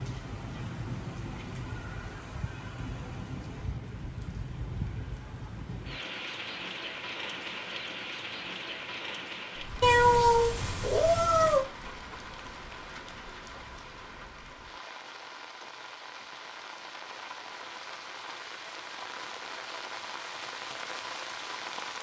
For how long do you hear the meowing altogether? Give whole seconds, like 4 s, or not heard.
2 s.